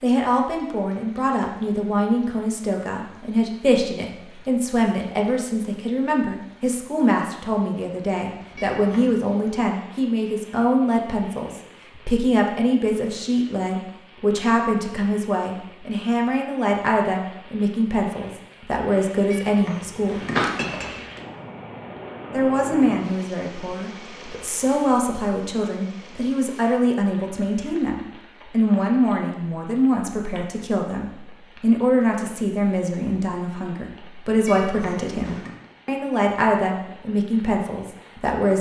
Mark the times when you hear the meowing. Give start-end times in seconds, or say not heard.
8.6-9.2, 19.3-21.2, 34.5-35.5.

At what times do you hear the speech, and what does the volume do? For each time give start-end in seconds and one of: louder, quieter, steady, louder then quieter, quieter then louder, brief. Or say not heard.
0.0-20.2 steady
22.3-38.5 steady.